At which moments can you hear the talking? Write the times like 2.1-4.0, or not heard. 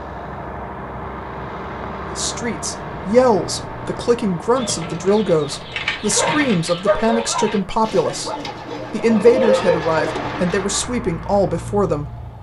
2.1-12.1.